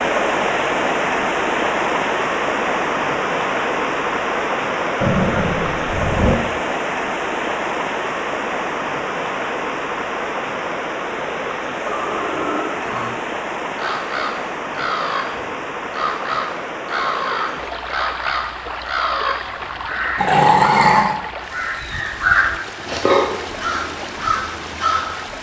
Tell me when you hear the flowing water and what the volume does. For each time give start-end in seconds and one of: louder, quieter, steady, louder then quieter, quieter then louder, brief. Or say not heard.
0.0-25.3 quieter.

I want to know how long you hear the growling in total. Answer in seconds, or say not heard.
4 s.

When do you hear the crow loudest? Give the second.
22 s.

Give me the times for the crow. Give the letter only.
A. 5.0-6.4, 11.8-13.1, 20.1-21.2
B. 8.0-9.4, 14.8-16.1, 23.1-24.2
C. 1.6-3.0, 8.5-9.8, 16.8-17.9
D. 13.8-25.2
D.